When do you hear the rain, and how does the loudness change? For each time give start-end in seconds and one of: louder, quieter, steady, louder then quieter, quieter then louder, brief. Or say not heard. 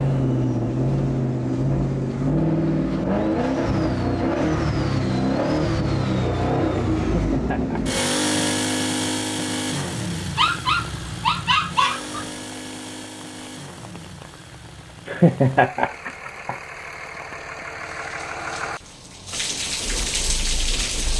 10.3-21.1 louder.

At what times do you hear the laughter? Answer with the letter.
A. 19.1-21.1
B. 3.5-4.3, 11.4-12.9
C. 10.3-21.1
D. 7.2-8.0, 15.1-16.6
D.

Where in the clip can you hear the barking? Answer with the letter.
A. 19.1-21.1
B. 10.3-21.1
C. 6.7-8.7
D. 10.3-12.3
D.